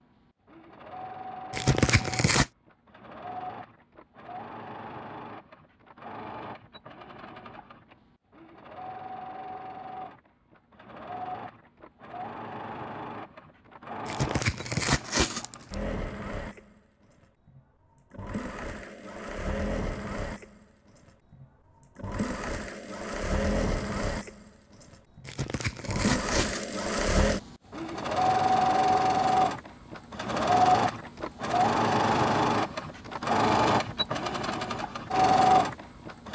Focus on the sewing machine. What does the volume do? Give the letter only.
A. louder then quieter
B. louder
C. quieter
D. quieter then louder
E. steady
B.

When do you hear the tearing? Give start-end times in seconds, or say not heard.
1.5-2.5, 14.1-15.8, 25.2-26.8.